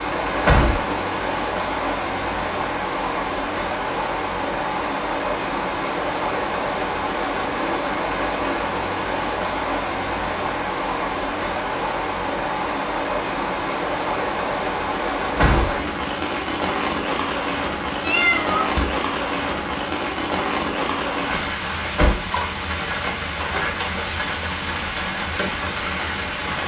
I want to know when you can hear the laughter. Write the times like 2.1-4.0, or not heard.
not heard.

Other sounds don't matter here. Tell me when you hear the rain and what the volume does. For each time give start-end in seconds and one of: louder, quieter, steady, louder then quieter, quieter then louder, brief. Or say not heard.
0.0-26.6 steady.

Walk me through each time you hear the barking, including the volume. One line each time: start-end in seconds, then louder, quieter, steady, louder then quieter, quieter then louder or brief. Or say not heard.
not heard.